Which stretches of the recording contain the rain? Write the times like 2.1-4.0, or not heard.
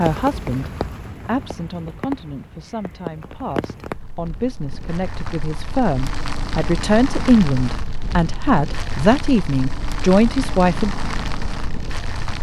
0.0-12.3.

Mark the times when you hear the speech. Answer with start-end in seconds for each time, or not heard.
0.0-10.9.